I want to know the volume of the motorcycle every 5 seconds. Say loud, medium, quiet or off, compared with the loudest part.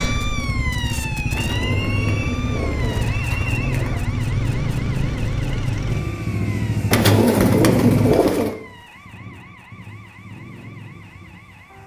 loud, loud, quiet.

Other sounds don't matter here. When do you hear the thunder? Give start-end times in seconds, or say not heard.
not heard.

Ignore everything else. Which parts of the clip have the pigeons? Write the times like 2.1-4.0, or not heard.
1.3-4.1, 6.9-8.6.